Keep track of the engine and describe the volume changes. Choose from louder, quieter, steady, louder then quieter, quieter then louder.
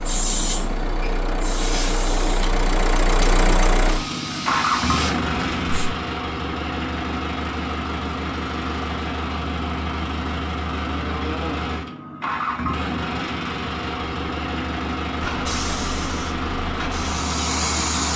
steady.